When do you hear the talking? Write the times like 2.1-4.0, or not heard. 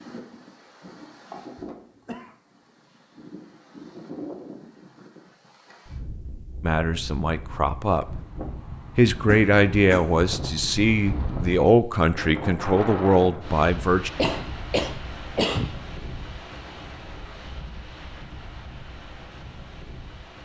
6.6-8.2, 8.9-14.1.